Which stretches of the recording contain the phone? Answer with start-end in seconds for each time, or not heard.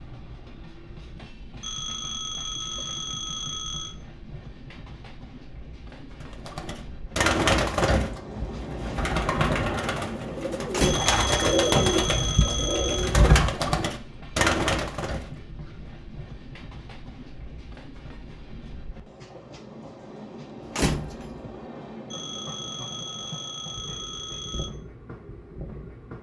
1.6-4.0, 10.8-13.2, 22.1-24.7.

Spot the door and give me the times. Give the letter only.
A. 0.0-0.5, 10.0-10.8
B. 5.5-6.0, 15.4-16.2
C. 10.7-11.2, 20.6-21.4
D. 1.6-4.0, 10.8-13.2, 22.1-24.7
C.